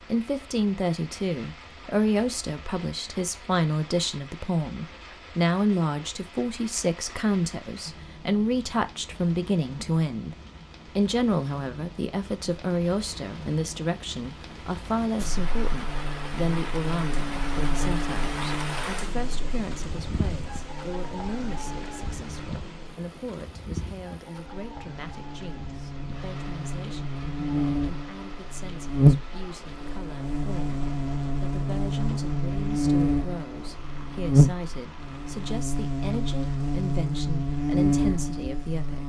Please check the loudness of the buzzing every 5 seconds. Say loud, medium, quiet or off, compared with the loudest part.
off, off, off, medium, quiet, loud, loud, loud.